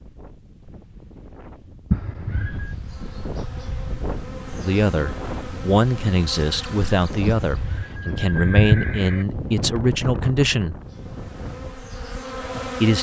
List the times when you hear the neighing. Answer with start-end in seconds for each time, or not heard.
1.9-2.8, 7.5-9.2.